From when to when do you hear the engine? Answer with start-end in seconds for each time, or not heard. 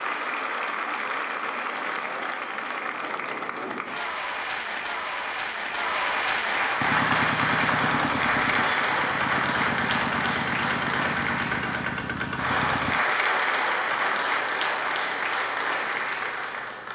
6.8-12.9.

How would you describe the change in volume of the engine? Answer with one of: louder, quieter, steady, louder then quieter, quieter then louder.
steady.